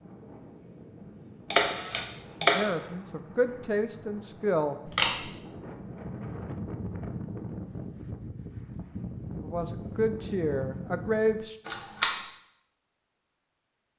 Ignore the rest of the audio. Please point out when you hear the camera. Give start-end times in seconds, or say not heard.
1.5-2.7, 4.8-5.2, 11.7-12.2.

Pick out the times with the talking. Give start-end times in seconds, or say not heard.
2.4-4.8, 9.4-11.6.